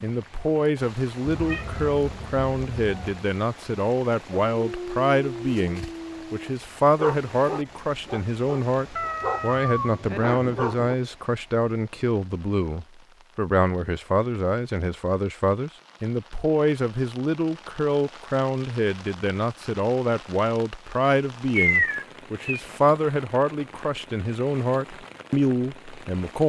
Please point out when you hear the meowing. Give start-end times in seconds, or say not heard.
1.2-3.2, 8.9-10.9, 21.6-22.6.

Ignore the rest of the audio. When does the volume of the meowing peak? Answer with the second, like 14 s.
22 s.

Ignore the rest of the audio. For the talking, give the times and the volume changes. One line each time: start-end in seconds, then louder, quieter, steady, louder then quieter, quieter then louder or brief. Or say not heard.
0.0-26.4 steady.